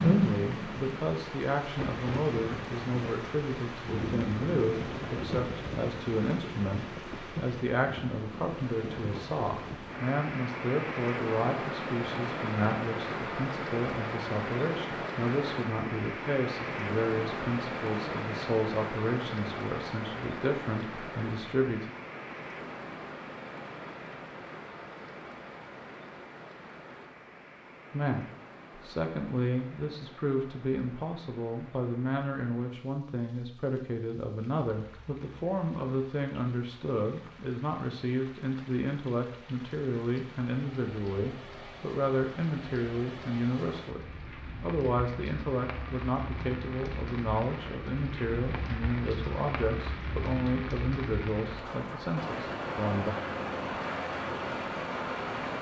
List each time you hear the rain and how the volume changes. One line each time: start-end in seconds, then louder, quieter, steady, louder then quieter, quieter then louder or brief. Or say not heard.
0.0-55.5 quieter then louder.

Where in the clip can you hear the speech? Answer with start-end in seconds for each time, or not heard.
0.0-21.9, 27.9-53.1.